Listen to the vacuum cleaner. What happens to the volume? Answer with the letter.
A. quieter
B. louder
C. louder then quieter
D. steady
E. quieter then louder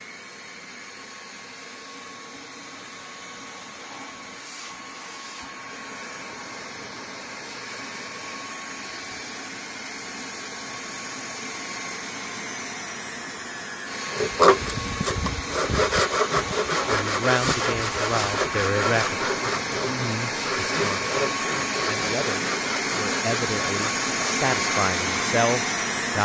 B.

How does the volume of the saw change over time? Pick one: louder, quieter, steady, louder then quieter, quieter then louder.
quieter.